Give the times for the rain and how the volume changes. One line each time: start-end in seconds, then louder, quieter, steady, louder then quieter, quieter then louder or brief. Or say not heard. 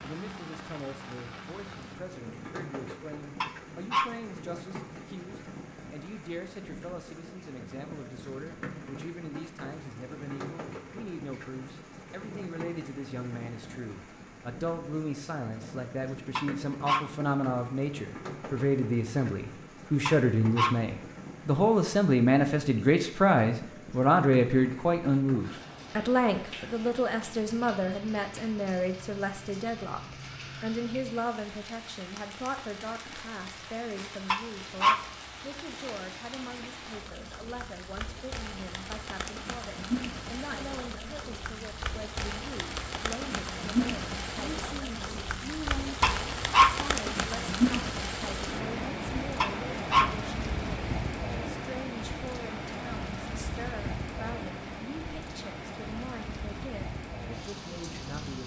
0.0-58.4 louder.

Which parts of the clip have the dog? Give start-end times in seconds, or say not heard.
3.4-4.1, 16.4-17.1, 20.1-20.8, 34.3-35.0, 46.0-46.7, 49.4-50.1.